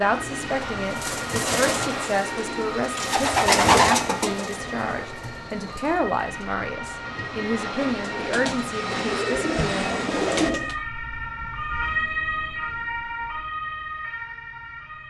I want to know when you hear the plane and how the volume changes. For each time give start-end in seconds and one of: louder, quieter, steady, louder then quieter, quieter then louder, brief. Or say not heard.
0.0-10.6 quieter then louder.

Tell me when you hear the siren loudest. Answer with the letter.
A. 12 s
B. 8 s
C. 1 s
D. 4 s
A.